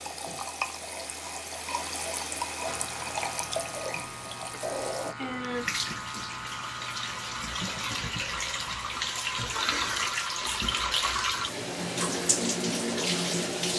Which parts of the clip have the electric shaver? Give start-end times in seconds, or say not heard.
2.6-11.2.